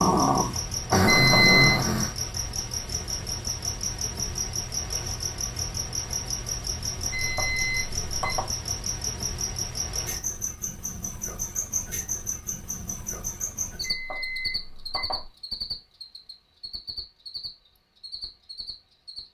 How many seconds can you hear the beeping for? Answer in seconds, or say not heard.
4 s.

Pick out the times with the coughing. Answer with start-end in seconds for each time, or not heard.
not heard.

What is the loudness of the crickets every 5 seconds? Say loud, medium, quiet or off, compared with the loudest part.
loud, loud, loud, medium.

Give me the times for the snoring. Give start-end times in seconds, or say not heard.
0.0-2.1.